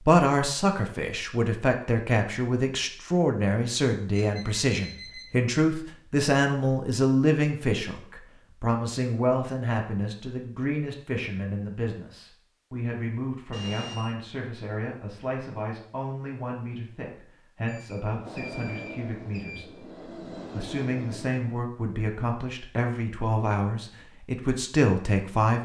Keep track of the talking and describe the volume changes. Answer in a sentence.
The loudness of the talking goes down, then up.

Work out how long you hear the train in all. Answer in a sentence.
You can hear the train for 3 seconds altogether.